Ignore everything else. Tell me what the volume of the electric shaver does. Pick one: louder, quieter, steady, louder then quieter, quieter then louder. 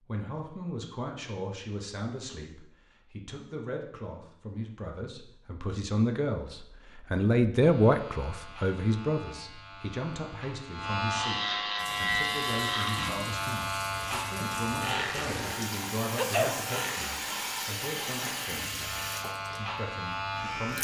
louder then quieter.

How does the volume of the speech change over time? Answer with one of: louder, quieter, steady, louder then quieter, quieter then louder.
louder then quieter.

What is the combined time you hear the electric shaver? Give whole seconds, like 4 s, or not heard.
13 s.